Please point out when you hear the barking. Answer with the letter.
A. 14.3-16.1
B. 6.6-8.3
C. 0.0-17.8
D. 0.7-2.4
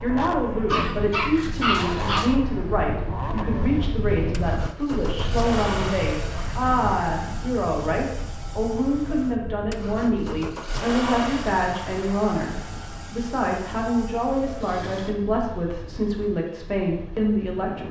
D.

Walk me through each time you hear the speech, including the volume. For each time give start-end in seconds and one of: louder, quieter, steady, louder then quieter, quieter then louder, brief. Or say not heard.
0.0-17.8 steady.